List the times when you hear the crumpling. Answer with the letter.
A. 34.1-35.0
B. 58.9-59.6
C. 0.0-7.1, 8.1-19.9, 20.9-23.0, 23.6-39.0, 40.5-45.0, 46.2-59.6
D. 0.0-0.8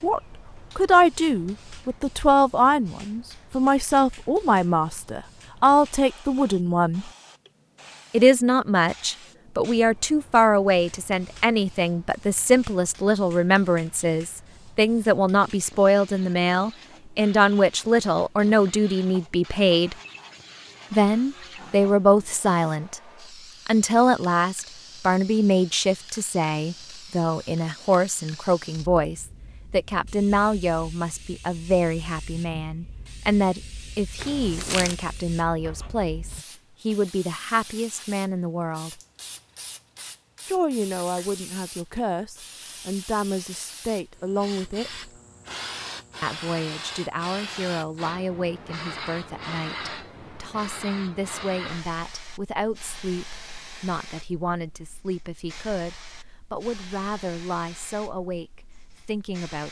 A.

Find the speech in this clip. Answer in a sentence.
You can hear the speech from 0.0 to 7.1 s, from 8.1 to 19.9 s, from 20.9 to 23.0 s, from 23.6 to 39.0 s, from 40.5 to 45.0 s and from 46.2 to 59.6 s.